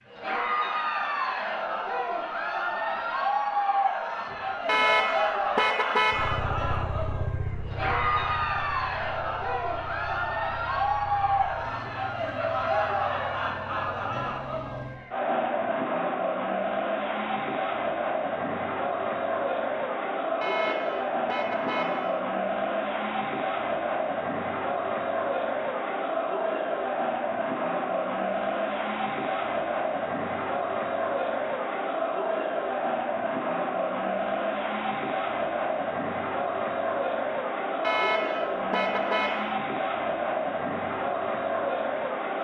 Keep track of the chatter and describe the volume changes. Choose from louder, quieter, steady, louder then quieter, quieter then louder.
steady.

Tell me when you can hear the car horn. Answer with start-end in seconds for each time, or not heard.
4.7-6.5, 20.4-22.2, 37.8-39.5.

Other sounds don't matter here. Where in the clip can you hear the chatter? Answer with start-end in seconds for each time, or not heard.
0.1-42.3.